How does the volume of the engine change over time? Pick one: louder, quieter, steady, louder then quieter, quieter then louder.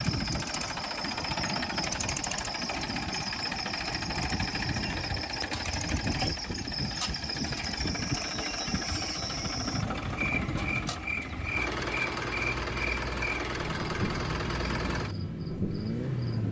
steady.